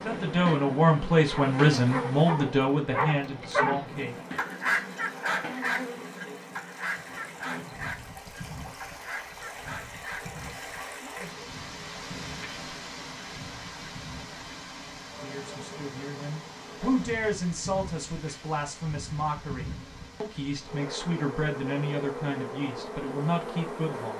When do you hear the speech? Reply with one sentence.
The speech can be heard from 0.1 to 4.2 s and from 15.2 to 24.1 s.